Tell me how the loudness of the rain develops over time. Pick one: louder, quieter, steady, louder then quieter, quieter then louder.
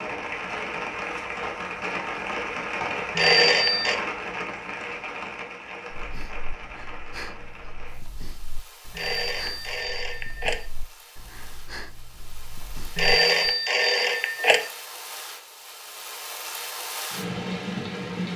quieter then louder.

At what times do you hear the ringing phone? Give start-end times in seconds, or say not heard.
3.1-4.0, 8.9-10.7, 12.9-14.7.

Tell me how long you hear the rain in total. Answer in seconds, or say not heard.
18 s.